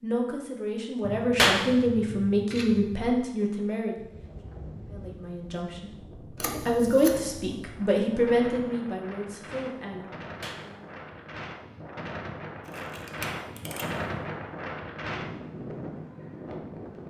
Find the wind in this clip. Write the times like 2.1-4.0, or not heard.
4.0-17.0.